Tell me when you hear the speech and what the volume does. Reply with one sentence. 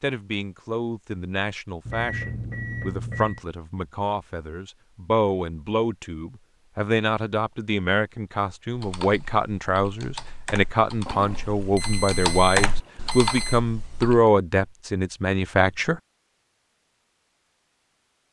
You can hear the speech from 0.0 to 16.0 s, getting louder.